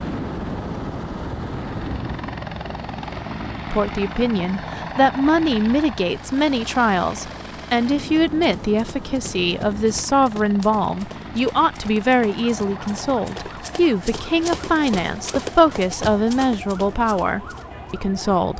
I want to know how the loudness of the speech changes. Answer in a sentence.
The volume of the speech stays about the same.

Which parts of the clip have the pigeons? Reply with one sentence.
You can't hear the pigeons here.